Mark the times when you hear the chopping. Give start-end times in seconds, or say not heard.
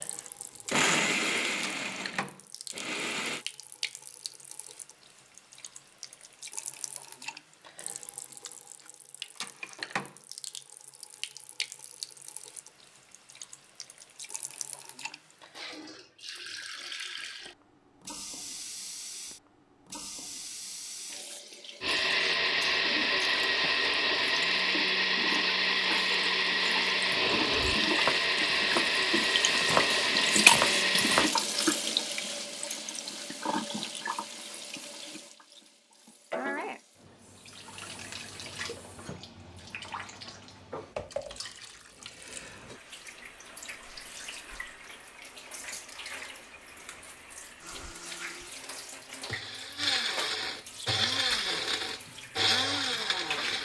27.5-31.3.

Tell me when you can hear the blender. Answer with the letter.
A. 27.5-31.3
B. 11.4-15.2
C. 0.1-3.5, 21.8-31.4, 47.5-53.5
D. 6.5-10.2
C.